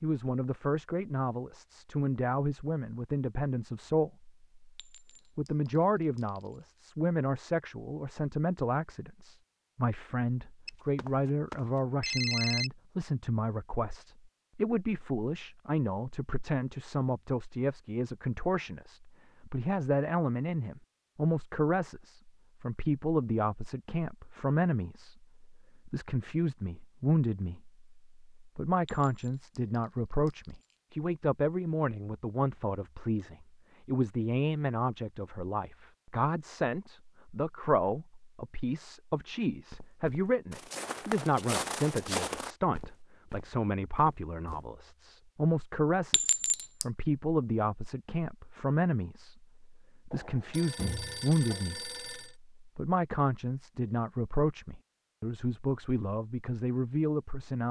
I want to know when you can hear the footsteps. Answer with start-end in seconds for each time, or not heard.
39.7-44.7.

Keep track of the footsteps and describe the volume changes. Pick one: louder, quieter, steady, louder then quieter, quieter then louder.
louder then quieter.